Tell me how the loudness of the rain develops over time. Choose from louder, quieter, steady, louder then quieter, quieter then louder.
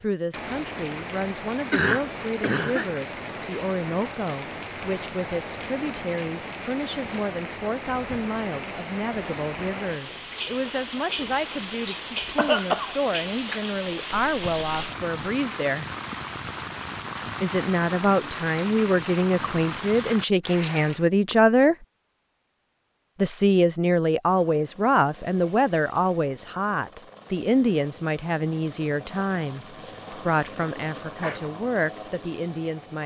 steady.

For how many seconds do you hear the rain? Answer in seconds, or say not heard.
21 s.